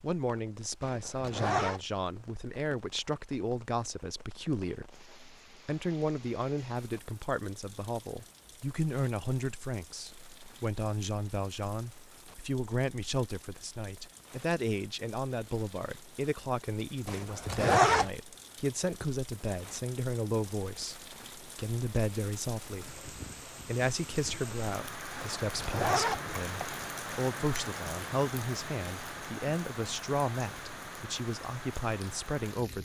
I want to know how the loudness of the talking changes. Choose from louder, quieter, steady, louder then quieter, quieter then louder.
steady.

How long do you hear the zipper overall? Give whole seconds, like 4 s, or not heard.
4 s.